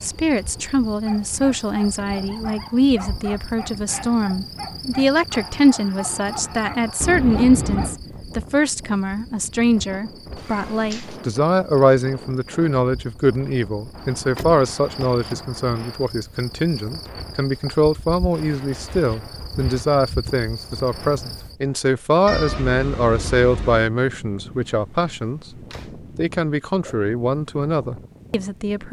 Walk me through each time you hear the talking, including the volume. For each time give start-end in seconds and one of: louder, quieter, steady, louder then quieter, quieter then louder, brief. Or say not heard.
0.0-25.4 steady
26.1-28.8 brief.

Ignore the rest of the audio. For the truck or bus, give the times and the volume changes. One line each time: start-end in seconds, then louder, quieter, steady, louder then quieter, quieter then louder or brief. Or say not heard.
not heard.